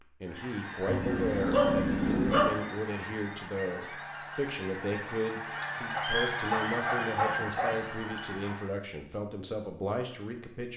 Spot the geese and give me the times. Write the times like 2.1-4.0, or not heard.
0.2-8.8.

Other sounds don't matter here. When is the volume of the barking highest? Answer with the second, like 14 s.
2 s.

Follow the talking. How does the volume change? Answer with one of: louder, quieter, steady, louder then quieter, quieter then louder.
steady.